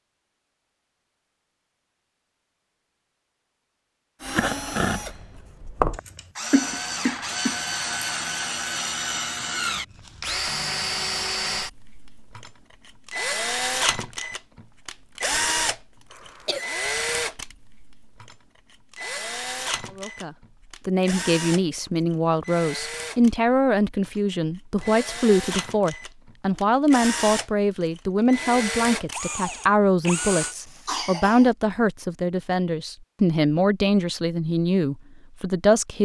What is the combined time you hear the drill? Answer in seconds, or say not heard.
26 s.